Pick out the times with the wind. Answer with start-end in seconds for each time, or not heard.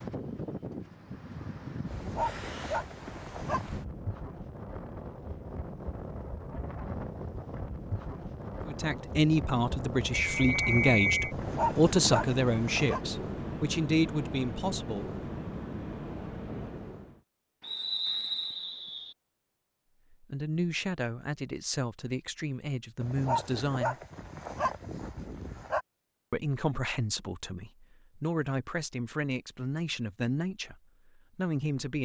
0.0-17.2.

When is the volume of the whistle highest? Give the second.
11 s.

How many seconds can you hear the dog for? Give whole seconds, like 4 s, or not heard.
6 s.